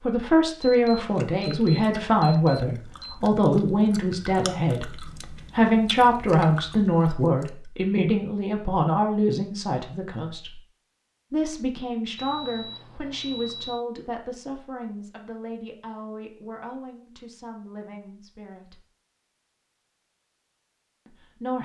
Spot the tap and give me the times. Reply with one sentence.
You can't hear the tap here.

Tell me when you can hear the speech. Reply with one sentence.
You can hear the speech from 0.1 to 10.6 s, from 11.3 to 18.9 s and from 21.1 to 21.6 s.